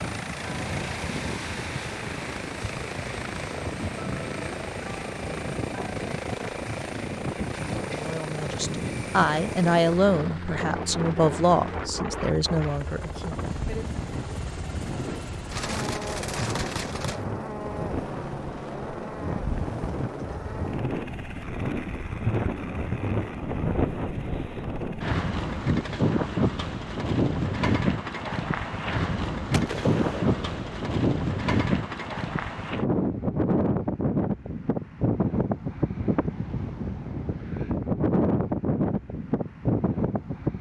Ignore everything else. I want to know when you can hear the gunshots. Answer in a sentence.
The gunshots can be heard from 15.5 to 17.2 s and from 29.5 to 30.6 s.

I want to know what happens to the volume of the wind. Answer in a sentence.
The loudness of the wind goes up.